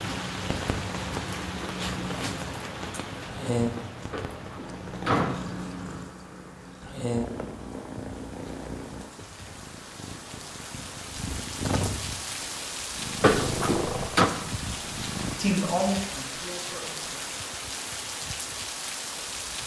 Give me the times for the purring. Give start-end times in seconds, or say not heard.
0.0-15.3.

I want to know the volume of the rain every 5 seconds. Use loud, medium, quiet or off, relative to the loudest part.
loud, medium, loud, loud.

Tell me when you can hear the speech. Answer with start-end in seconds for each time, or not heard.
15.3-17.2.